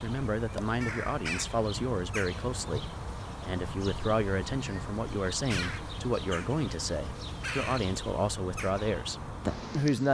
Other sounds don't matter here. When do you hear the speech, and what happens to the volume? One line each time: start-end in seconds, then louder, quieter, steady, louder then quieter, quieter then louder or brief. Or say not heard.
0.0-10.0 steady.